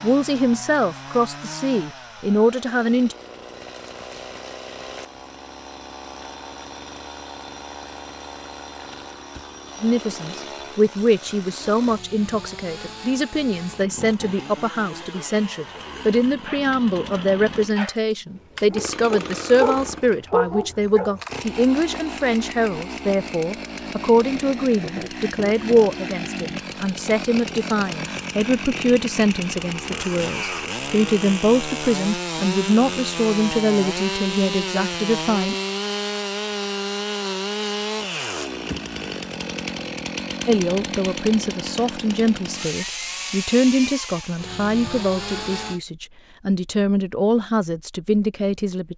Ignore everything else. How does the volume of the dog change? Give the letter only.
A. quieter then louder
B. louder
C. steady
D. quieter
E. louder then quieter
B.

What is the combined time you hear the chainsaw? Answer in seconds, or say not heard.
46 s.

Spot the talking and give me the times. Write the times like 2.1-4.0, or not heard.
0.0-3.1, 9.8-35.5, 40.5-48.9.